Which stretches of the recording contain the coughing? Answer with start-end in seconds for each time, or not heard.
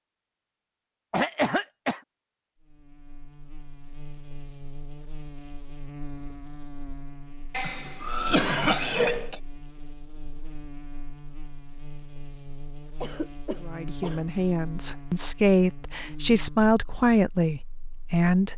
1.1-2.0, 7.5-9.4, 13.0-14.2.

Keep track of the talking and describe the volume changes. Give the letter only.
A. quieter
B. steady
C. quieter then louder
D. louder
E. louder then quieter
E.